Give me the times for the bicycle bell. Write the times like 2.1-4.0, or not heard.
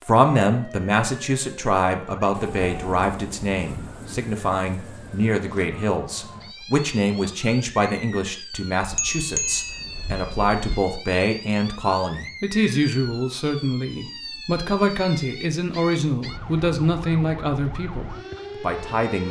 8.8-10.8.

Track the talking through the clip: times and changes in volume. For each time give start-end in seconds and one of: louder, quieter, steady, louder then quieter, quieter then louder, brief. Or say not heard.
0.0-19.2 steady.